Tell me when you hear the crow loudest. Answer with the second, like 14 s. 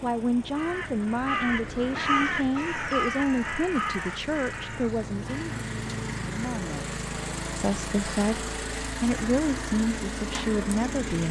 2 s.